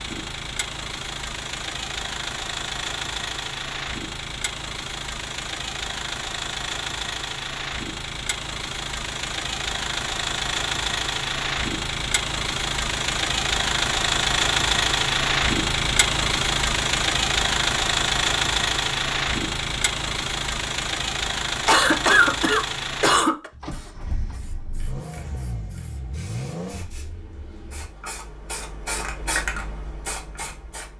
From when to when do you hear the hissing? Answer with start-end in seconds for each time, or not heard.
23.4-30.9.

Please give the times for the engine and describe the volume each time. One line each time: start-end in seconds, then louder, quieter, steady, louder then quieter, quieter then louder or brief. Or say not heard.
0.0-27.9 louder then quieter.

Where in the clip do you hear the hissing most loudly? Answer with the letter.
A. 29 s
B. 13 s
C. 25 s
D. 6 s
A.